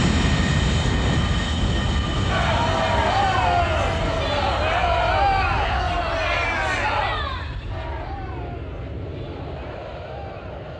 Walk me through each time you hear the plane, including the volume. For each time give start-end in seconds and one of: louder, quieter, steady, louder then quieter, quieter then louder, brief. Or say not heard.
0.0-10.7 quieter.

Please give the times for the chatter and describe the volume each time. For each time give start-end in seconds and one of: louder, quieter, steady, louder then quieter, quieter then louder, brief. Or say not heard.
2.2-10.7 quieter.